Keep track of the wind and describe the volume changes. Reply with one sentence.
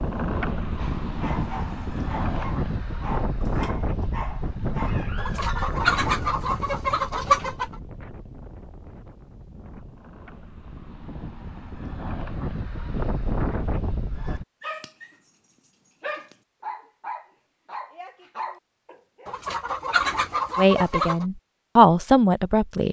The volume of the wind goes down, then up.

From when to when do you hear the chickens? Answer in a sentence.
You can hear the chickens from 5.2 to 7.8 s and from 19.2 to 21.2 s.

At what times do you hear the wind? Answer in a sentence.
The wind can be heard from 0.0 to 14.4 s.